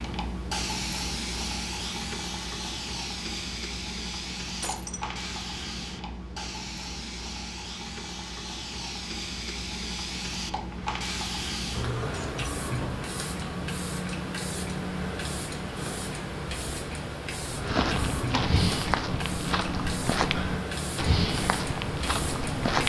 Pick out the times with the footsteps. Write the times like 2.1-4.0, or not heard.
17.5-22.8.